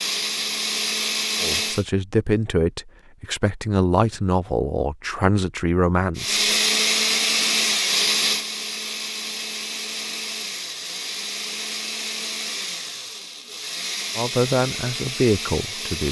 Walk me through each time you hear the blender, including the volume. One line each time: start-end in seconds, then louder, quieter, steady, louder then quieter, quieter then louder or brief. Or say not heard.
0.0-1.9 brief
6.2-16.0 quieter.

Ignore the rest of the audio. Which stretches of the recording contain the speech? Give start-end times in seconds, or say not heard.
1.4-6.5, 14.2-16.0.